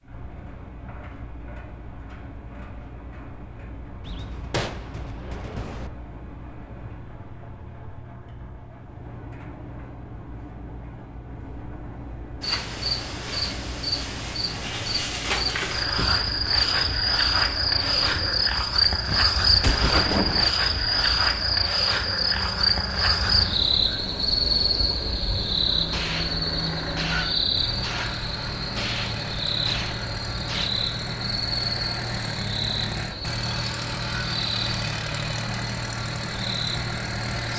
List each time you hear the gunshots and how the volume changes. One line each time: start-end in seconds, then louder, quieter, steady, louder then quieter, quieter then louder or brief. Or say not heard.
4.0-5.9 brief
19.1-20.5 brief
25.9-30.7 steady.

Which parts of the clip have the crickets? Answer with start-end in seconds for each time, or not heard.
12.4-37.5.